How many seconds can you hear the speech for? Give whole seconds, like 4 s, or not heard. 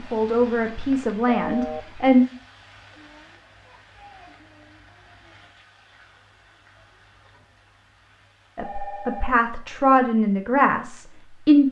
5 s.